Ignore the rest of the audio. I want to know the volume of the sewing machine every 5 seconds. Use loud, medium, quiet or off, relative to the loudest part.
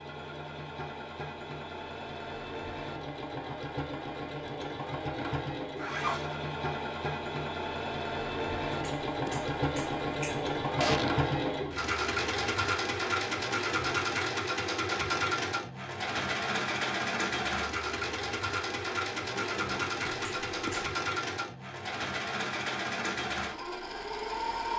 medium, loud, loud, loud, loud.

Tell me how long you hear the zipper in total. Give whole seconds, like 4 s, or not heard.
2 s.